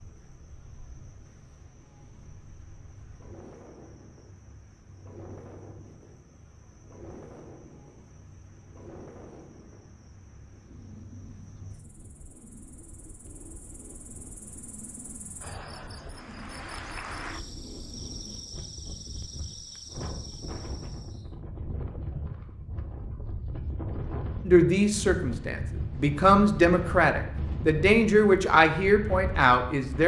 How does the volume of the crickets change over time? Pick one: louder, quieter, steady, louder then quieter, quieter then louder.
louder.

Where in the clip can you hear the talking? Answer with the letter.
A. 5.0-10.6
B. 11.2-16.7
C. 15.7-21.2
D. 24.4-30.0
D.